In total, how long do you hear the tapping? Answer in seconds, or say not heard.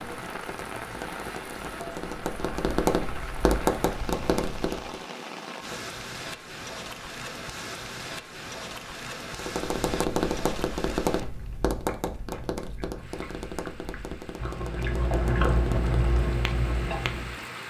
13 s.